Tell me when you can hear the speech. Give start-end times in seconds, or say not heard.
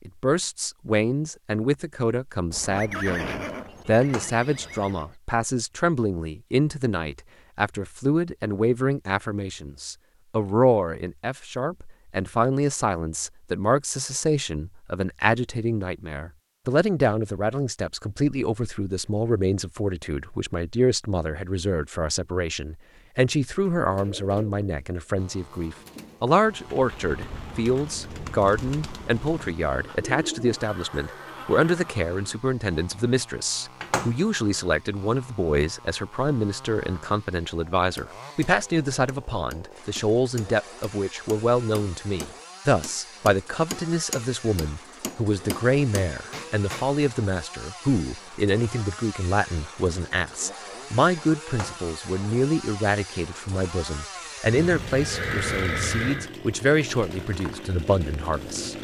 0.1-58.7.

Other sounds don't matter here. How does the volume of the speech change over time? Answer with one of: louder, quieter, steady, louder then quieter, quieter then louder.
steady.